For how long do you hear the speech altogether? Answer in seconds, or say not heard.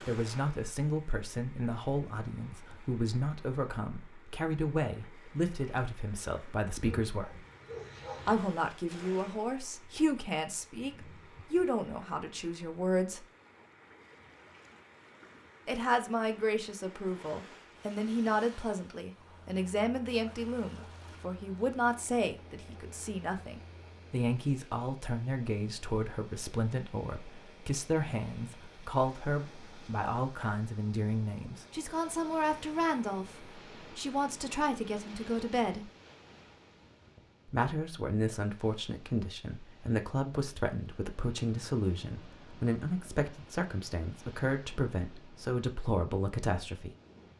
41 s.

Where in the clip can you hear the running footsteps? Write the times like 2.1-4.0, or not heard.
not heard.